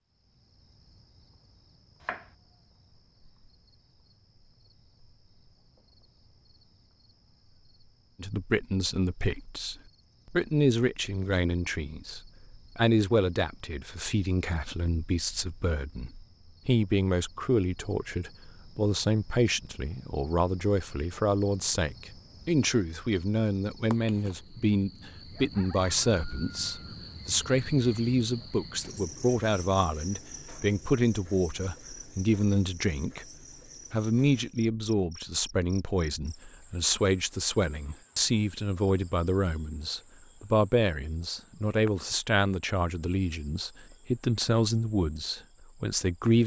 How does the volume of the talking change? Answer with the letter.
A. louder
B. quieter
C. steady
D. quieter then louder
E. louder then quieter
C.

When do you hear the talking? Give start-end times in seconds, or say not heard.
8.2-33.2, 33.9-46.4.